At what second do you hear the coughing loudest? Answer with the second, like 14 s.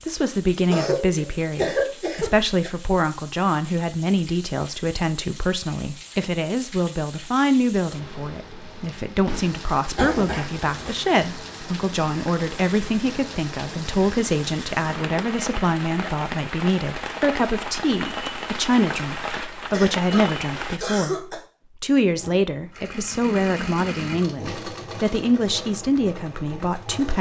2 s.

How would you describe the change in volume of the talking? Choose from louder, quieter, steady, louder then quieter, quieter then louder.
steady.